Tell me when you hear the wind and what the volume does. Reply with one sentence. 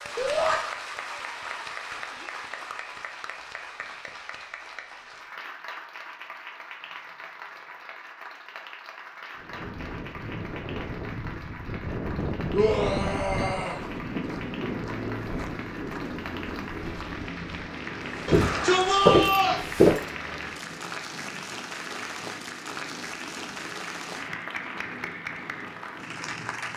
The wind can be heard from 9.3 to 26.7 s, getting quieter.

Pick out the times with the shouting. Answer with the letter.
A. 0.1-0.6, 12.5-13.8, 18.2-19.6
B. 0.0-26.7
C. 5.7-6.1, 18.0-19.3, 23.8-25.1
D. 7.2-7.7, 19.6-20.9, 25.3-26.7
A.